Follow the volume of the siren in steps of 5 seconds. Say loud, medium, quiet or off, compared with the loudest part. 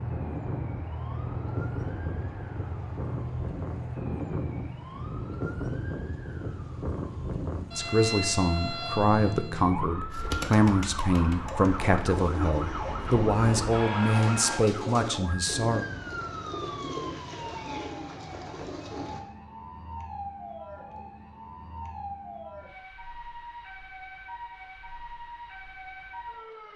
loud, loud, loud, medium, medium, medium.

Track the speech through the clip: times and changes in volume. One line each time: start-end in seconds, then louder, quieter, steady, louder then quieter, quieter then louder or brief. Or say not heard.
7.7-15.8 steady.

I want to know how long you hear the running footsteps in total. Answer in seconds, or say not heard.
not heard.